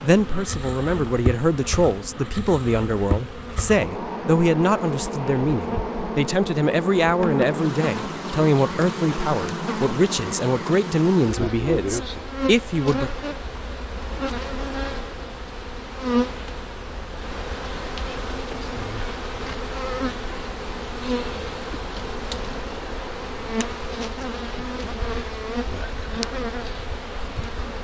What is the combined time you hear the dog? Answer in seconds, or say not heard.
not heard.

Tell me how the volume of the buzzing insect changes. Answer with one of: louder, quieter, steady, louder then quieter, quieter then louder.
steady.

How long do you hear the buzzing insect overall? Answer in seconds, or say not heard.
28 s.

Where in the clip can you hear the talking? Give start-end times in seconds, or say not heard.
0.0-13.1.